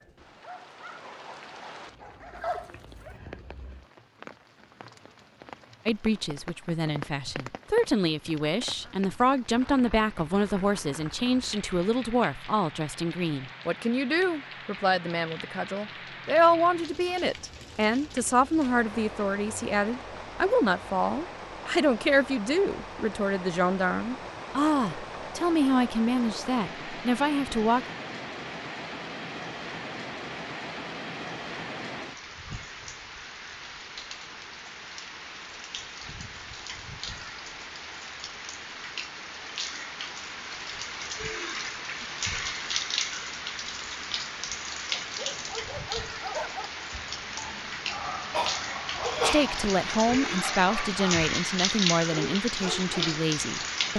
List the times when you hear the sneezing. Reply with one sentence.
You can hear the sneezing from 48.3 to 50.1 s.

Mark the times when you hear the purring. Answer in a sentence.
The purring can't be heard in this clip.